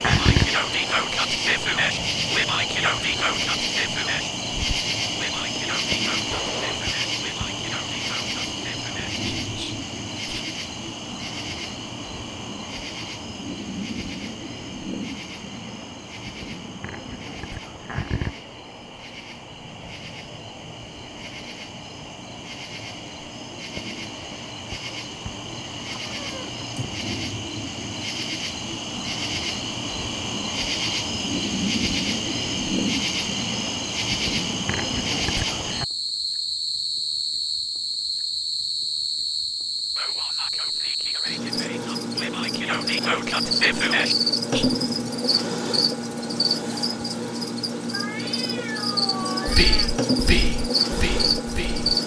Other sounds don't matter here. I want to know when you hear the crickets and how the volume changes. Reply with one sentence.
The crickets can be heard from 0.0 to 52.0 s, getting quieter then louder.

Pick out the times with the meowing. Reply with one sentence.
The meowing can be heard from 6.3 to 6.9 s, from 25.9 to 26.9 s and from 47.9 to 49.9 s.